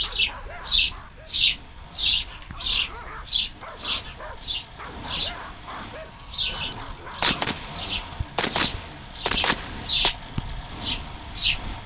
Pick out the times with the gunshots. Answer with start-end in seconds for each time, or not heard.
6.5-10.1.